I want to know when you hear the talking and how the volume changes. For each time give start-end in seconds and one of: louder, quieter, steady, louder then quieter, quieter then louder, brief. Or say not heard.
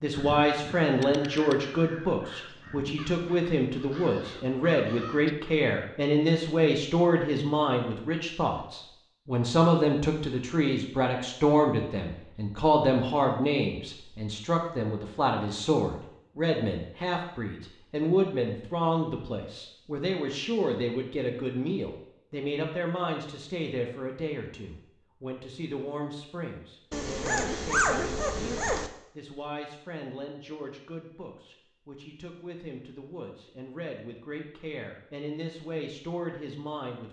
0.0-37.0 quieter.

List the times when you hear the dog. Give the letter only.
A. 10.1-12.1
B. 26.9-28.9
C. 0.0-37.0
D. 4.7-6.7
B.